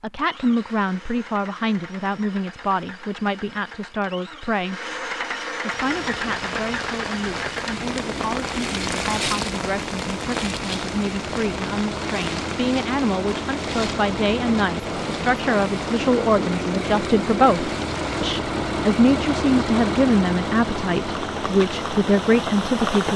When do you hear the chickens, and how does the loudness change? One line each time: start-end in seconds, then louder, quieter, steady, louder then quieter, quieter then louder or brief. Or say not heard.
not heard.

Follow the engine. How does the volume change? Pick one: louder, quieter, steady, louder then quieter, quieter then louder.
louder.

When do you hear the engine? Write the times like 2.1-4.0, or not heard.
0.0-23.1.